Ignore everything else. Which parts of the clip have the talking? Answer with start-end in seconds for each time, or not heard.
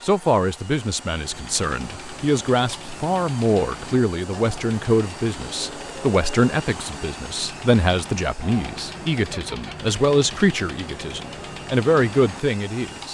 0.0-13.0.